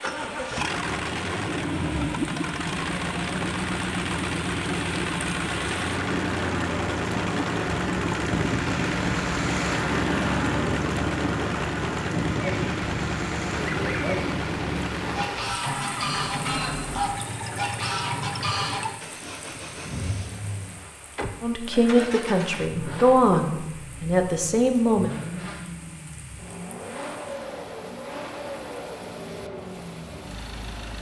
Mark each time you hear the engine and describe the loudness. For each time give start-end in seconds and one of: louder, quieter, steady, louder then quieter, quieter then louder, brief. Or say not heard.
0.0-30.9 quieter.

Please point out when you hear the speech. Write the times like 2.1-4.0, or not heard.
21.4-25.1.